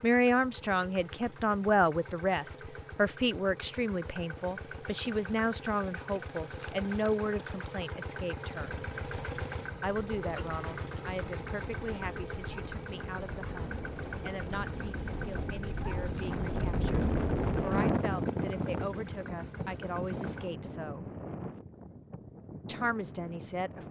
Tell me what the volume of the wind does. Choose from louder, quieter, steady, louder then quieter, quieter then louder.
louder then quieter.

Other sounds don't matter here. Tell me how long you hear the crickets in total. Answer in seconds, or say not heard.
not heard.